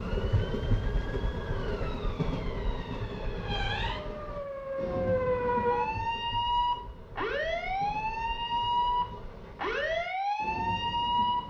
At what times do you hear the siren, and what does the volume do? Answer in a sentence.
The siren can be heard from 0.0 to 11.4 s, getting louder.